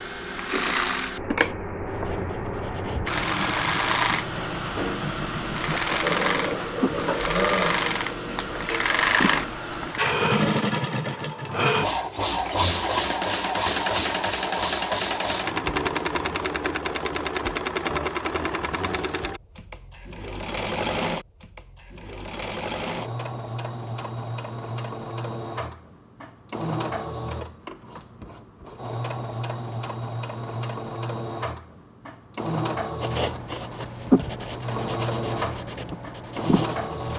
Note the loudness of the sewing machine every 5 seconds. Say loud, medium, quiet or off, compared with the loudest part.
loud, loud, loud, loud, medium, medium, medium, medium.